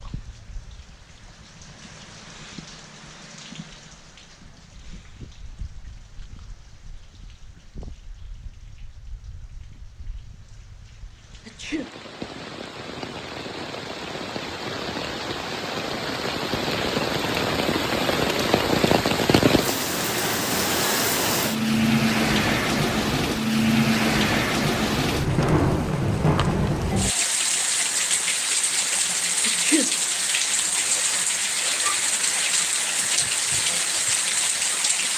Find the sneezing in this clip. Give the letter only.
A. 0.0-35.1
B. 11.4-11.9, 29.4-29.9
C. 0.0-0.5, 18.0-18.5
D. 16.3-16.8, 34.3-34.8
B.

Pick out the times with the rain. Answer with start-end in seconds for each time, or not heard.
0.0-35.1.